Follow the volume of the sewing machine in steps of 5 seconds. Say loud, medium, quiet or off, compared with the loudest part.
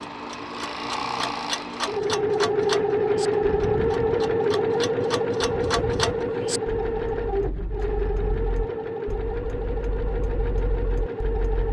loud, loud, medium.